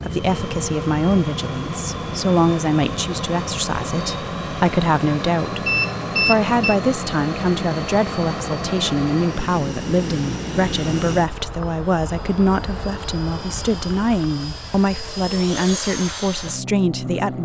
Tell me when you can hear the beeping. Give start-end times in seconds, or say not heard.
5.7-6.8.